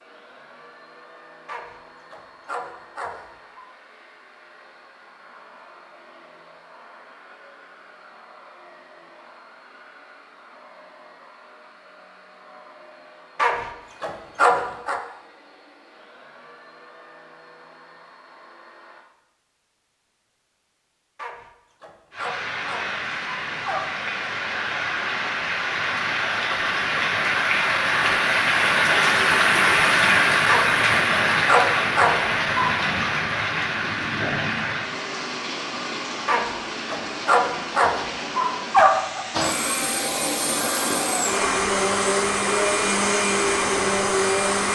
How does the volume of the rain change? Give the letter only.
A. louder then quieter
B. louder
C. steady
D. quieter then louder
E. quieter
A.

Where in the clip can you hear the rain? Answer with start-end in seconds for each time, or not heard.
22.1-44.7.